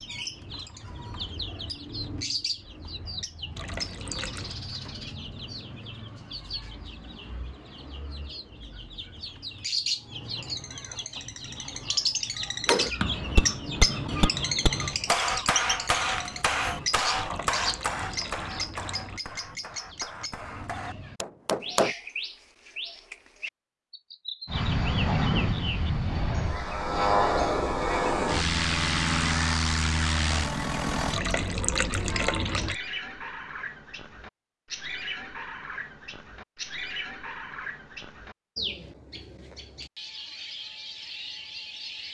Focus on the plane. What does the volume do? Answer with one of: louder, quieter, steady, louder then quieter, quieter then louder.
steady.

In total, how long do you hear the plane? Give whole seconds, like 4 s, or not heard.
7 s.